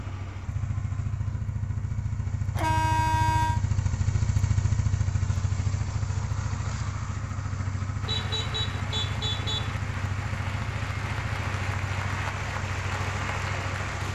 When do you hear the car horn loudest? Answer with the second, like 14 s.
3 s.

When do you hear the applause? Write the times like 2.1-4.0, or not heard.
8.0-14.0.